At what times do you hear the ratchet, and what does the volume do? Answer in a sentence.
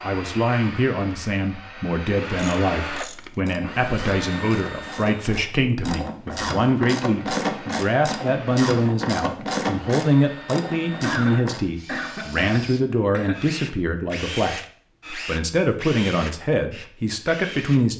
You can hear the ratchet from 2.3 to 11.6 s, getting louder.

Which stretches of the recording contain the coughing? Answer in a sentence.
You can hear the coughing from 11.0 to 13.4 s.